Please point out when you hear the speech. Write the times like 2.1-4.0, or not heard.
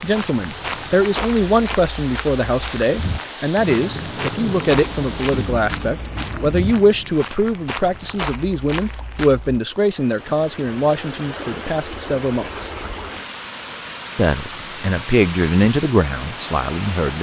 0.0-12.7, 14.2-17.1.